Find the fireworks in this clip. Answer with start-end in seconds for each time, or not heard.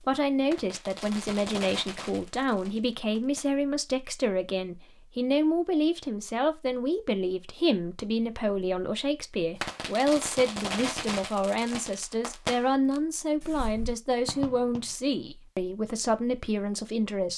0.0-3.6, 9.6-14.9.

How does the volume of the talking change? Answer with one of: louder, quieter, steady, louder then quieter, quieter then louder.
steady.